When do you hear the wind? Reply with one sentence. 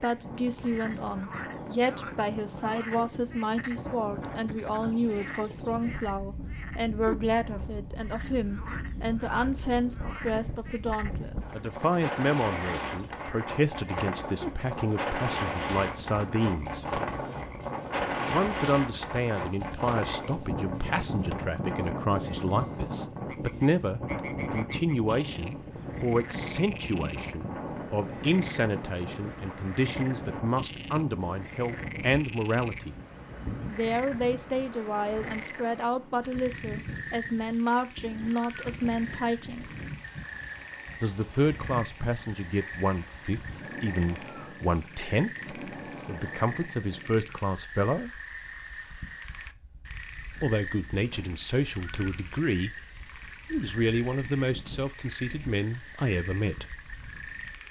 The wind can be heard from 0.0 to 57.6 s.